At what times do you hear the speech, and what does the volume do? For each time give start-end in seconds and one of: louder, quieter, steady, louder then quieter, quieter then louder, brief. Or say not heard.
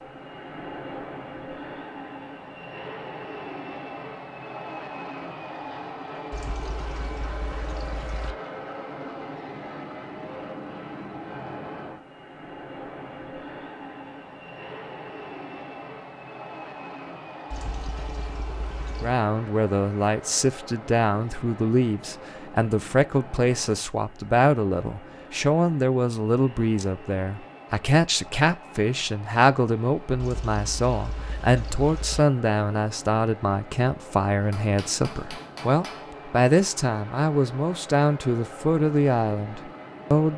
19.0-40.3 steady.